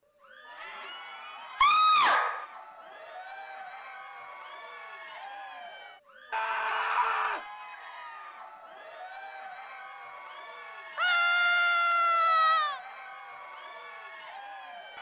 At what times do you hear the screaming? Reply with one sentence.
The screaming can be heard from 1.6 to 2.5 s, from 6.3 to 7.4 s and from 10.9 to 12.8 s.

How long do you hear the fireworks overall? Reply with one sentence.
The fireworks can't be heard in this clip.